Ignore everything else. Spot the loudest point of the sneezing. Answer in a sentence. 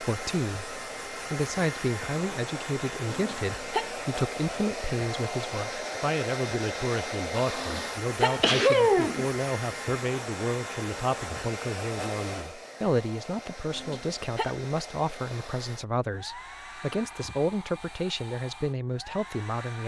The volume of the sneezing peaks at 9 seconds.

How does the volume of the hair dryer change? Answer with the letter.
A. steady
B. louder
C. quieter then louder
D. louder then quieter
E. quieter
E.